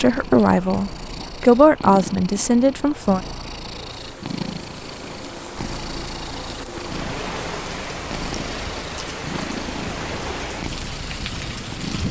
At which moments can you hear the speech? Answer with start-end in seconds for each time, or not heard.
0.0-3.2.